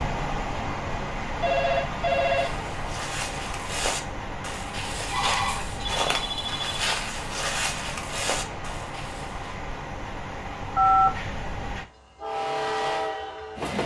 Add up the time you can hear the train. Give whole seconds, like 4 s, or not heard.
14 s.